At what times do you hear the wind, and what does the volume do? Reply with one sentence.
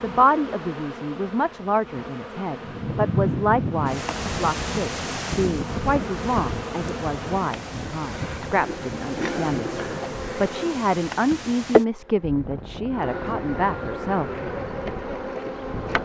You can hear the wind from 2.6 to 15.9 s, getting quieter.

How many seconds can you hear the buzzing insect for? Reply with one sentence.
You can hear the buzzing insect for 16 seconds altogether.